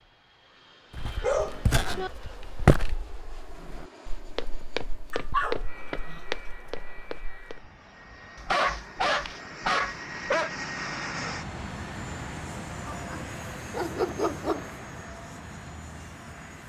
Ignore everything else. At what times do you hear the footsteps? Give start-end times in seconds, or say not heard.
0.9-7.7.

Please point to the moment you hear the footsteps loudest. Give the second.
3 s.